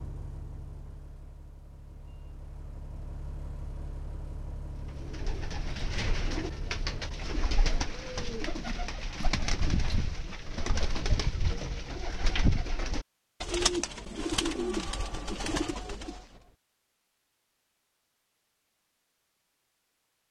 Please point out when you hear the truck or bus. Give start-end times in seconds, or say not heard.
0.0-7.2.